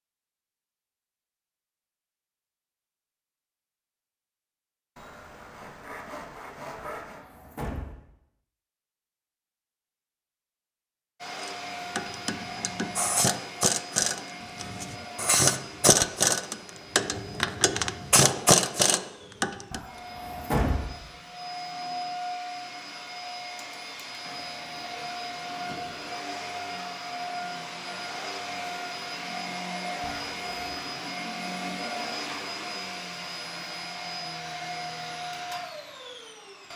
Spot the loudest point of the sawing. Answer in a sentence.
The volume of the sawing peaks at 7 seconds.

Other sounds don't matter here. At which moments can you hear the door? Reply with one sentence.
The door can be heard from 6.8 to 8.0 s, from 19.7 to 20.9 s and from 30.0 to 30.9 s.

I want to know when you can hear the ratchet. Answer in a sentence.
The ratchet can be heard from 11.4 to 19.8 s.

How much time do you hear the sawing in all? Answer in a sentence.
You can hear the sawing for 2 seconds altogether.